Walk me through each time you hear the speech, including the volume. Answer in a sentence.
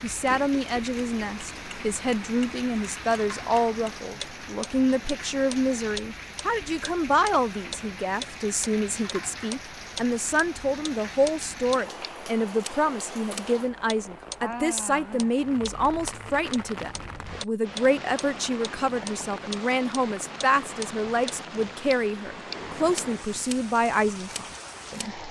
You can hear the speech from 0.0 to 25.2 s, at a steady volume.